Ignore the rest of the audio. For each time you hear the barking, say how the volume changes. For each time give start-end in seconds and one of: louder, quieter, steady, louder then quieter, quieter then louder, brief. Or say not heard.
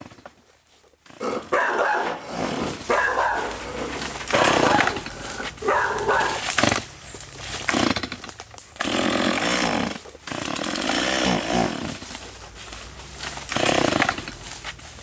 1.2-6.5 quieter then louder.